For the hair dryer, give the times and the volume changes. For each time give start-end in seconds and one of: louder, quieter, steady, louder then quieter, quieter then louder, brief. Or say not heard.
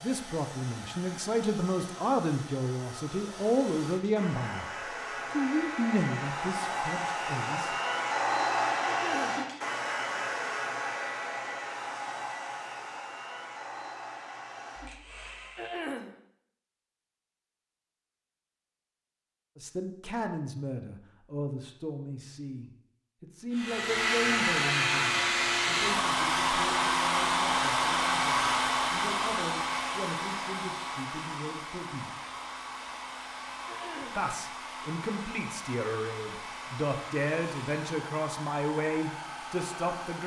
0.0-15.9 louder then quieter
23.5-40.2 quieter.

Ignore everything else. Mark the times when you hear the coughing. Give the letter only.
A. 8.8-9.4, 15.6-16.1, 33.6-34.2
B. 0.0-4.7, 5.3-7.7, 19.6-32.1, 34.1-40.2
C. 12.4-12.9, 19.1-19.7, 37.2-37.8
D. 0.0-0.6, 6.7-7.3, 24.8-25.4
A.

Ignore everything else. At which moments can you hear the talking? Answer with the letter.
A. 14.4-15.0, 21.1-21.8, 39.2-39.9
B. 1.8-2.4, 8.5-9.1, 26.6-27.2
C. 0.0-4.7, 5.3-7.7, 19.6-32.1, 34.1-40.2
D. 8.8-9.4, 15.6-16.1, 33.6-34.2
C.